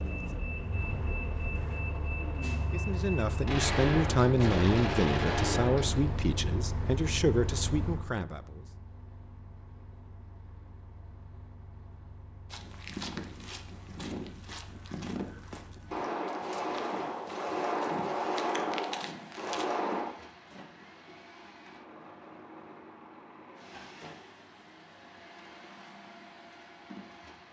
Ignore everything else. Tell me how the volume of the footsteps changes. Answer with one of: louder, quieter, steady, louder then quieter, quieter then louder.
quieter then louder.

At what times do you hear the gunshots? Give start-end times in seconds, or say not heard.
3.5-6.2, 15.9-20.1.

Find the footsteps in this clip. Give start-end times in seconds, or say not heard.
12.5-19.6.